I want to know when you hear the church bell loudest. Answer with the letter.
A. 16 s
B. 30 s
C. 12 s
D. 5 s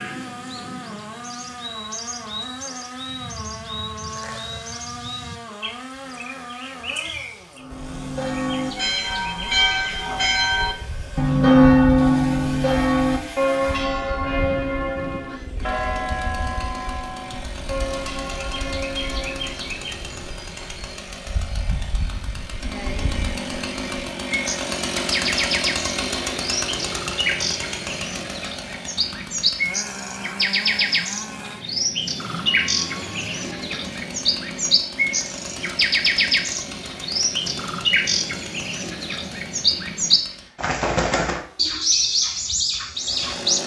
C.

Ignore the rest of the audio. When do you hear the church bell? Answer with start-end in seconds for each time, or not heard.
7.5-19.7.